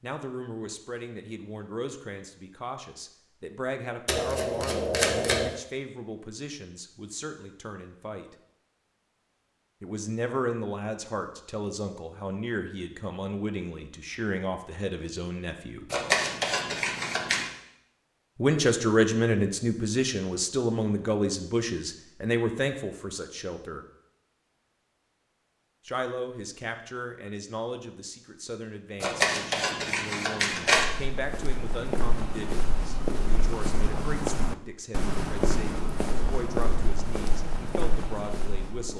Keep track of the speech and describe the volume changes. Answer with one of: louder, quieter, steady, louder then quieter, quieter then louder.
louder then quieter.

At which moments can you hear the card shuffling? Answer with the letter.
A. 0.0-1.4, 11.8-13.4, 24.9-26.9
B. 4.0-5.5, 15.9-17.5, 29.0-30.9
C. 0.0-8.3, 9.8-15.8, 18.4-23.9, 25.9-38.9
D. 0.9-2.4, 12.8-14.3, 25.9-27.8
B.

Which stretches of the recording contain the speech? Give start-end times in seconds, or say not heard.
0.0-8.3, 9.8-15.8, 18.4-23.9, 25.9-38.9.